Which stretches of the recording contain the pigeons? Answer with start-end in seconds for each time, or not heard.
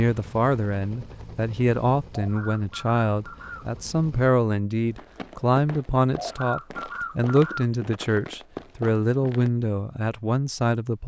2.1-3.8, 6.2-7.7.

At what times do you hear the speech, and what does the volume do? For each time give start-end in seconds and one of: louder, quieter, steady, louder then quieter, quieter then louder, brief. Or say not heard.
0.0-11.0 steady.